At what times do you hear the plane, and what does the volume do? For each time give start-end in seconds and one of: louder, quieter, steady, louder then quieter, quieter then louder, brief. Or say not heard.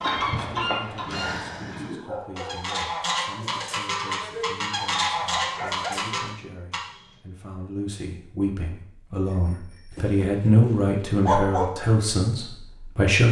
not heard.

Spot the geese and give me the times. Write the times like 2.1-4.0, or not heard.
0.0-6.8.